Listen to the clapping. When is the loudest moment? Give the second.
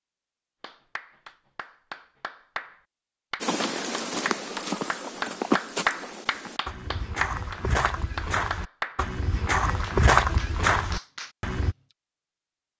6 s.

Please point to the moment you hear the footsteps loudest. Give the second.
10 s.